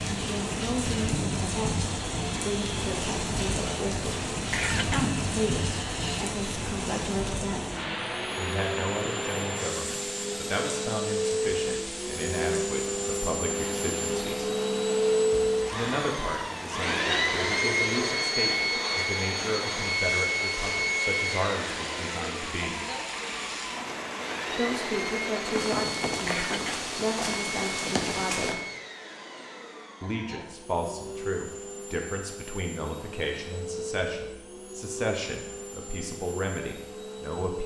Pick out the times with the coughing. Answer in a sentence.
The coughing can be heard from 4.5 to 5.1 s and from 26.2 to 26.9 s.